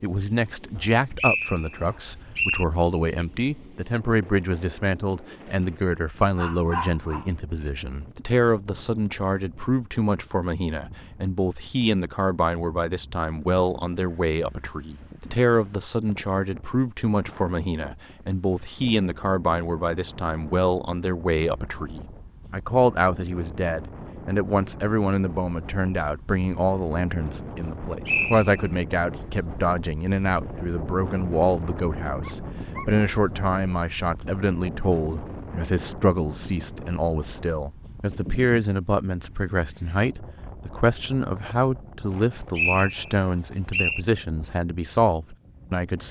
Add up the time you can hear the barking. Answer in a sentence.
You can hear the barking for 2 seconds altogether.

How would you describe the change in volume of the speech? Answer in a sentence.
The volume of the speech stays about the same.